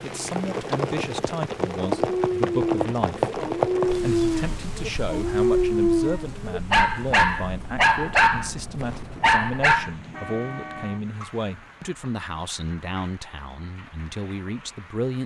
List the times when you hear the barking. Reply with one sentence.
You can hear the barking from 1.9 to 9.9 s.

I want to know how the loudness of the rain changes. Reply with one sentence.
The volume of the rain goes down.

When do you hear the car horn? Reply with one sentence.
You can hear the car horn from 9.8 to 11.1 s.